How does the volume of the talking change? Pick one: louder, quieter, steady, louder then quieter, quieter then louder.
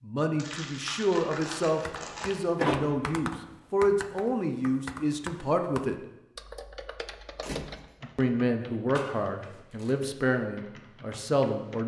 steady.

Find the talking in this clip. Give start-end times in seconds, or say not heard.
0.0-6.0, 8.2-11.8.